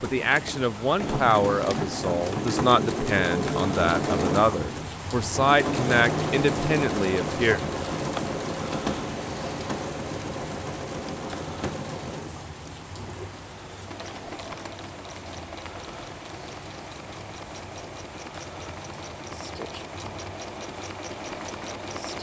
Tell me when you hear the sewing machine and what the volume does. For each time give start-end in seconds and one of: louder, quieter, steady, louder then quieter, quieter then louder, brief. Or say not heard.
0.0-22.1 quieter.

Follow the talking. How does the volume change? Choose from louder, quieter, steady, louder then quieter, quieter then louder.
steady.